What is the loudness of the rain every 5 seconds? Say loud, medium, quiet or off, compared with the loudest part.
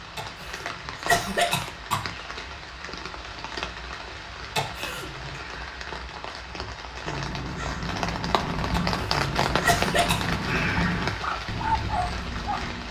medium, loud, loud.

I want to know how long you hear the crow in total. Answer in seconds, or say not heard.
6 s.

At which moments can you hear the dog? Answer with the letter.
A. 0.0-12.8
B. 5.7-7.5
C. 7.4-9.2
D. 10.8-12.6
D.